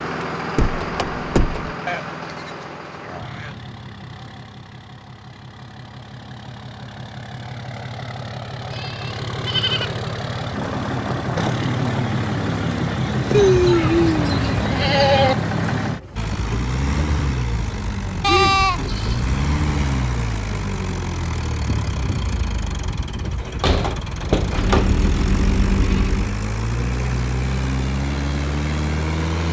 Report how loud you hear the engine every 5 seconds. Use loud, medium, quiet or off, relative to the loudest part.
medium, medium, loud, loud, medium, loud.